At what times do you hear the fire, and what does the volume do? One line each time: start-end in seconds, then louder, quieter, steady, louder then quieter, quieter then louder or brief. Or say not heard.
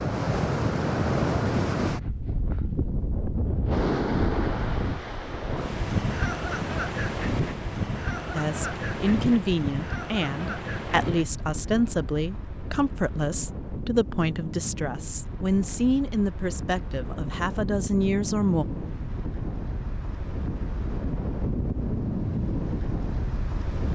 not heard.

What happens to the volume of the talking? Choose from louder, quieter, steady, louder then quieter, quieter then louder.
steady.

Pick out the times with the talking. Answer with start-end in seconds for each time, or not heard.
8.3-18.6.